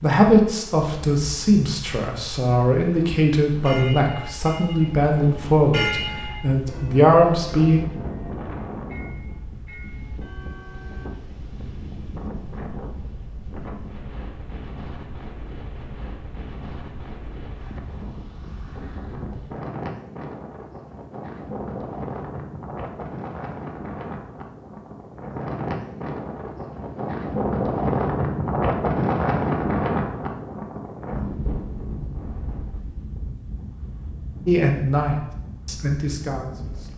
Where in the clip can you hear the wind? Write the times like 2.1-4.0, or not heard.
0.0-36.9.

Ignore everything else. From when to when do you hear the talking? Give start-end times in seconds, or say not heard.
0.0-7.8, 34.5-36.9.